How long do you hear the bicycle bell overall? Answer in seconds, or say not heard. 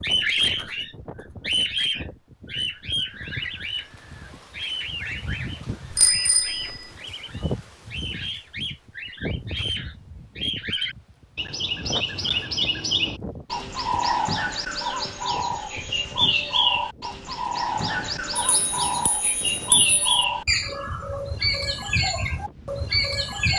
3 s.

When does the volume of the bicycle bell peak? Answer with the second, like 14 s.
6 s.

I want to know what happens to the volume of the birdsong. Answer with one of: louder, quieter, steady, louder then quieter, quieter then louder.
quieter then louder.